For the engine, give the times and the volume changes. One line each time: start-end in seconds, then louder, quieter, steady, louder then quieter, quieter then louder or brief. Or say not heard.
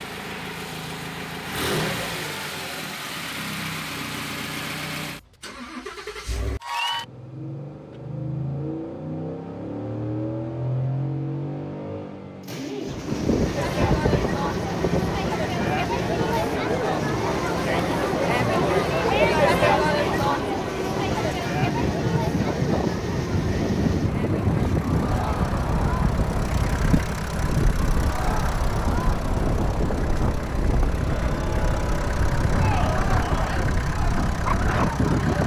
0.0-35.4 steady.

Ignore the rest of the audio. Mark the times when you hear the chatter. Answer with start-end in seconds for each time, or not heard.
13.6-35.4.